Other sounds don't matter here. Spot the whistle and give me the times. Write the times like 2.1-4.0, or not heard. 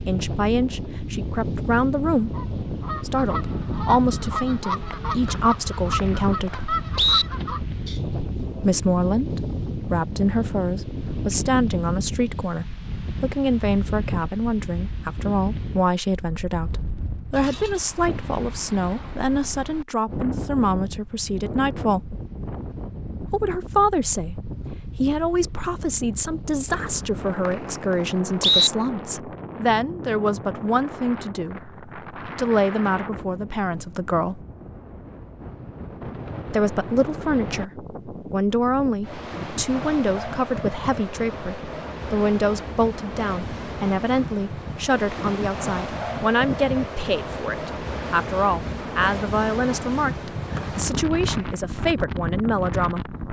5.2-7.2, 26.7-28.7, 50.5-51.5.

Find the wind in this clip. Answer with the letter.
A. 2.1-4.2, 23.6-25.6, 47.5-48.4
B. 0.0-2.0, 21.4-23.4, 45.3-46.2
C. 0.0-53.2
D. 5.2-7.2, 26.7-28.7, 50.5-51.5
C.